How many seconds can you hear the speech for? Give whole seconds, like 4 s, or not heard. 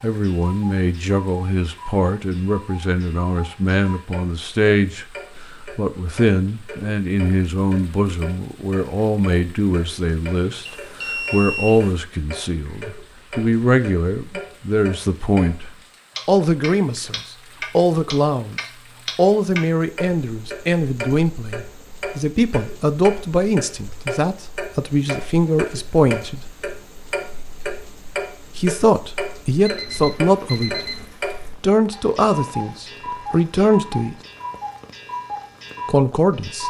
31 s.